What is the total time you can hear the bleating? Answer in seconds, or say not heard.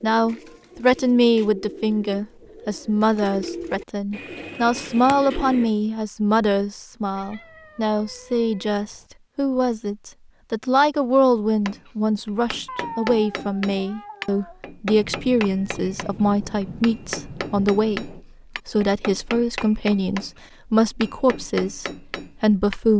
not heard.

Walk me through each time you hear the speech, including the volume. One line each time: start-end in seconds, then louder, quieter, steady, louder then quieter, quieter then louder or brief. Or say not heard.
0.0-22.9 steady.